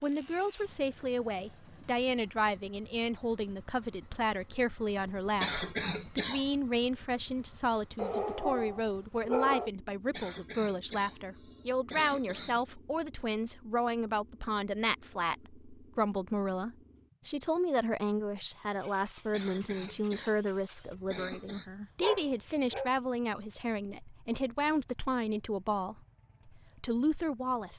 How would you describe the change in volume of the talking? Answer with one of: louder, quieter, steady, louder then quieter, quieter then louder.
steady.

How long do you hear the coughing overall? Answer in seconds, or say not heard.
6 s.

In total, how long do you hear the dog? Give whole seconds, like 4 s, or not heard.
3 s.